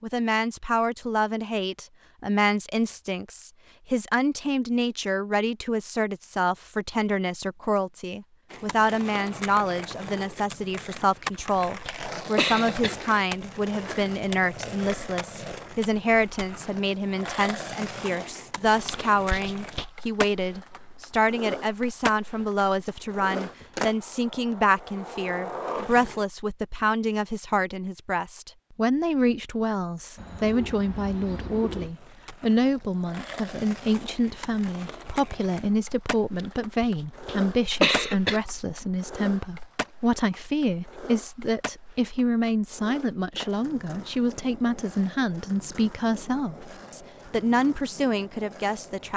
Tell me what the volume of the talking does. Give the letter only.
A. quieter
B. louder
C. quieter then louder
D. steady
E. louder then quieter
D.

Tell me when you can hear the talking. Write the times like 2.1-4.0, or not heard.
0.0-49.1.